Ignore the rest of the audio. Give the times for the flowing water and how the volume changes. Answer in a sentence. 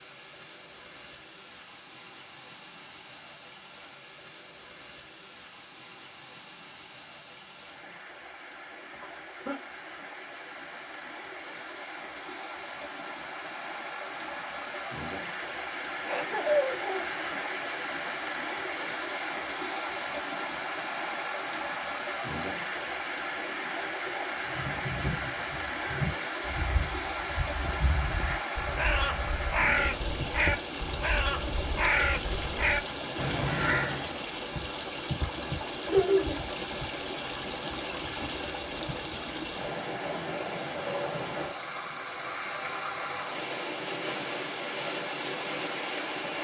The flowing water can be heard from 0.0 to 46.4 s, getting louder.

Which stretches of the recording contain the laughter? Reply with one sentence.
The laughter can be heard from 9.0 to 9.6 s, from 16.1 to 17.1 s and from 35.9 to 36.4 s.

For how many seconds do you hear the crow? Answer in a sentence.
The crow can be heard for 10 seconds in total.